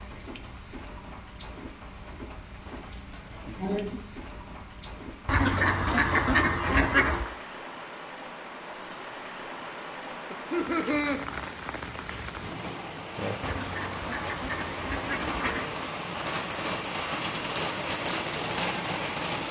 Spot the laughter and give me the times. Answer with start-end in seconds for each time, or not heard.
3.1-4.0, 10.3-11.2.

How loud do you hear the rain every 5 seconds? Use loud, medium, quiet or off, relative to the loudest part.
quiet, medium, medium, loud.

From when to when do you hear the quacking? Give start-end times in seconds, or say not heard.
5.2-7.3, 13.4-15.8.